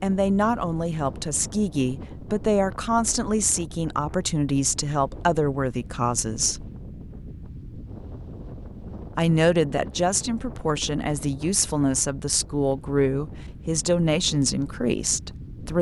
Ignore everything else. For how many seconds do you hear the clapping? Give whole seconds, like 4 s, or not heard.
not heard.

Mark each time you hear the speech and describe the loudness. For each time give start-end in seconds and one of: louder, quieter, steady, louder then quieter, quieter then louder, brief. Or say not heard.
0.0-6.7 steady
9.2-15.7 steady.